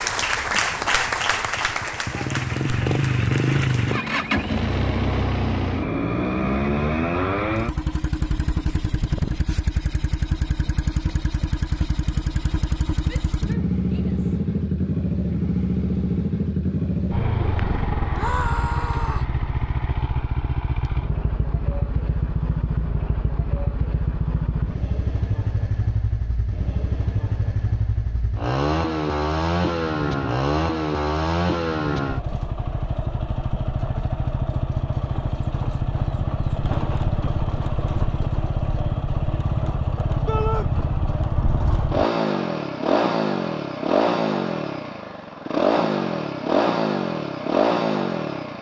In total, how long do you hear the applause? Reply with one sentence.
You can hear the applause for 4 seconds altogether.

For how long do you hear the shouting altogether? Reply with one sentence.
You can hear the shouting for 3 seconds altogether.